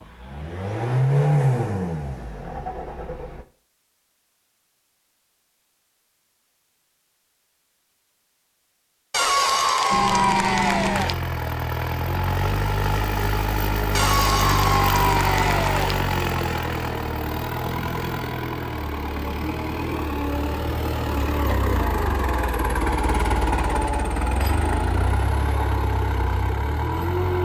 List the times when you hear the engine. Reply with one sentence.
You can hear the engine from 0.0 to 3.5 s and from 9.9 to 27.4 s.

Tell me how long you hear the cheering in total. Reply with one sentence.
The cheering can be heard for 4 seconds in total.